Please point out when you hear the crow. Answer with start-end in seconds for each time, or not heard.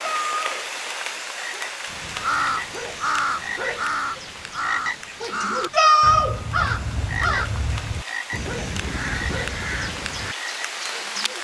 1.9-10.3.